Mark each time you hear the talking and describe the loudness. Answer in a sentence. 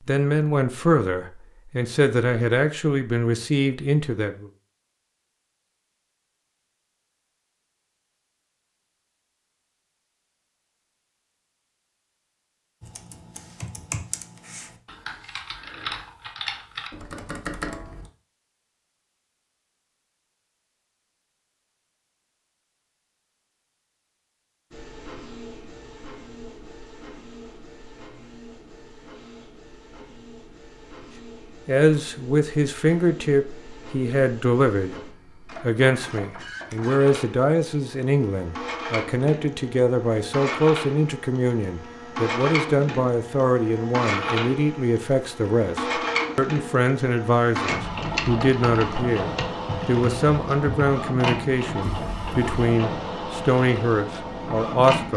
The talking can be heard from 0.1 to 4.5 s, getting quieter then louder; and from 31.6 to 55.1 s, at a steady volume.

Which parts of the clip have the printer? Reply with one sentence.
The printer can be heard from 24.7 to 55.1 s.